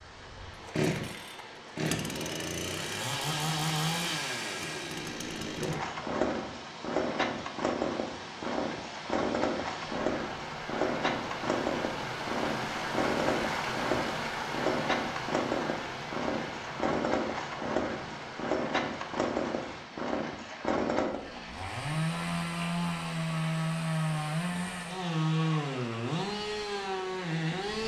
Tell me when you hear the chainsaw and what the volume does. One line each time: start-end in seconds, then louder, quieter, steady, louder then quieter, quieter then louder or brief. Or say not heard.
0.0-27.8 steady.